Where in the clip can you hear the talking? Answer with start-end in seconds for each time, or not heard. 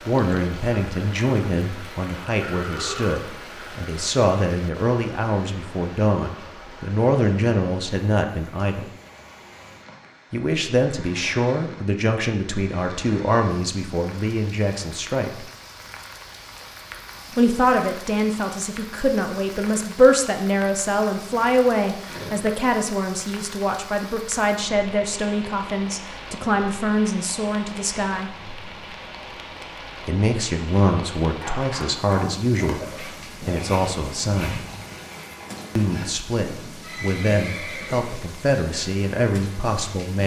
0.1-8.9, 10.3-15.4, 17.3-28.3, 30.1-34.6, 35.8-40.2.